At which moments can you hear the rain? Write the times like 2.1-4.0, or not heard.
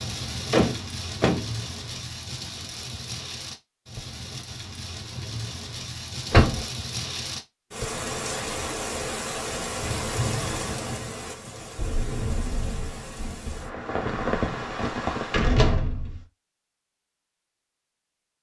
0.0-15.6.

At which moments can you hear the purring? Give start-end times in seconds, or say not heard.
not heard.